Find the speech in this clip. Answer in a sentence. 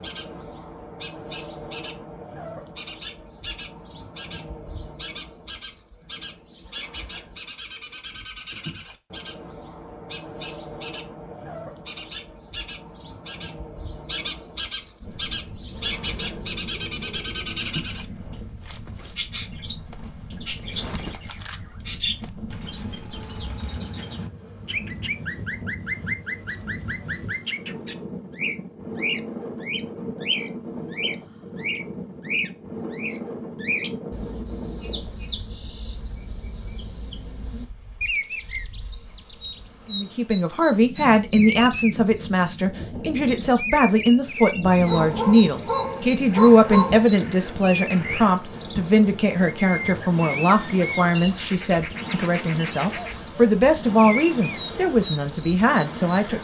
The speech can be heard from 39.9 to 56.4 s.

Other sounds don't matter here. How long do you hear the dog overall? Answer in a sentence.
You can hear the dog for 2 seconds altogether.